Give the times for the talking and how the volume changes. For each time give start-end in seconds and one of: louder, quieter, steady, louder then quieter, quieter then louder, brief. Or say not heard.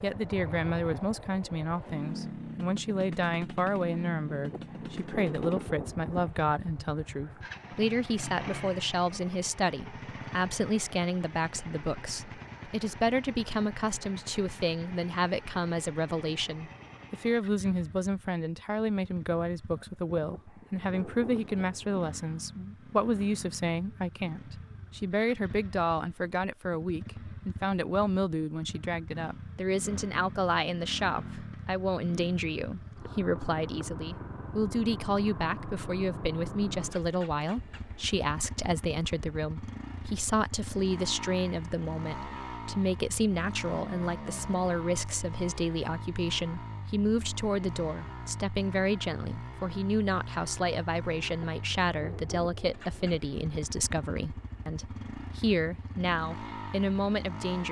0.0-57.6 steady.